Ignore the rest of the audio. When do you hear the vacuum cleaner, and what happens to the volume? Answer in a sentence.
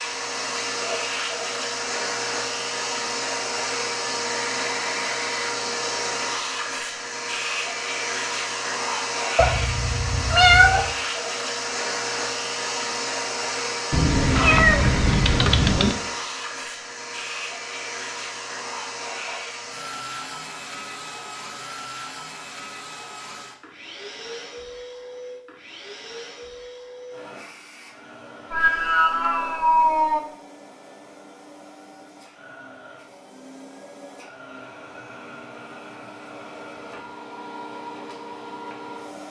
The vacuum cleaner can be heard from 0.0 to 39.2 s, getting quieter.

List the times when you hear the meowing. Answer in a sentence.
The meowing can be heard from 9.3 to 10.8 s, from 13.9 to 15.9 s and from 28.5 to 30.2 s.